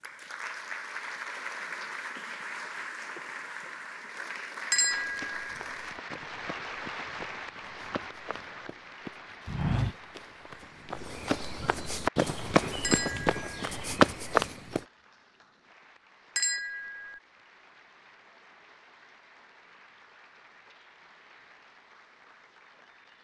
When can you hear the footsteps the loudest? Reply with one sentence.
The volume of the footsteps peaks at 14 seconds.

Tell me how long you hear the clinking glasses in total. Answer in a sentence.
You can hear the clinking glasses for 2 seconds altogether.